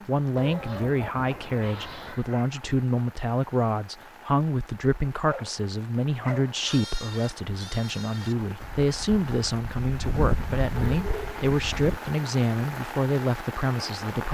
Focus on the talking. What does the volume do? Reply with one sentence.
The volume of the talking stays about the same.